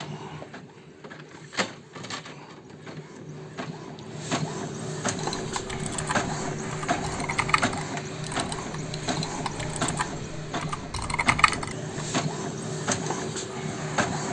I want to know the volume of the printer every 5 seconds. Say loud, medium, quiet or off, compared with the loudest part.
medium, loud, loud.